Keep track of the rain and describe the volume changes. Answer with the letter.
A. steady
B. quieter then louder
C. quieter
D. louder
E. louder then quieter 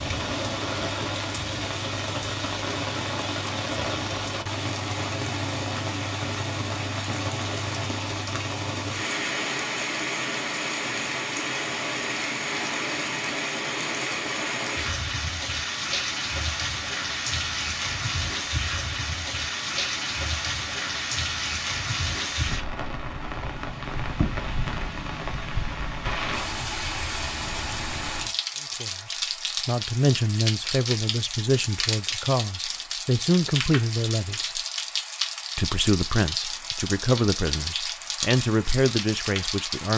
A.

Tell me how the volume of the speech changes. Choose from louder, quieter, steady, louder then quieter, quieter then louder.
steady.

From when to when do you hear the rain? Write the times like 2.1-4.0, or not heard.
0.0-39.9.